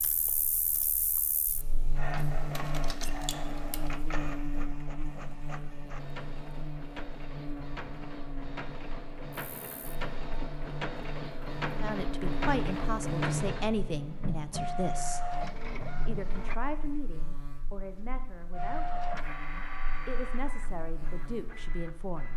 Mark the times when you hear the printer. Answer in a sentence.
The printer can be heard from 1.9 to 16.6 s and from 18.5 to 22.3 s.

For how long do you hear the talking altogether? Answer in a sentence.
The talking can be heard for 10 seconds in total.